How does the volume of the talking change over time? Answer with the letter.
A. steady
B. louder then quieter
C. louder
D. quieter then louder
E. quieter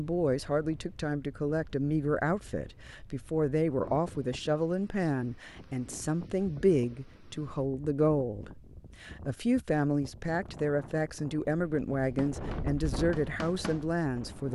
A.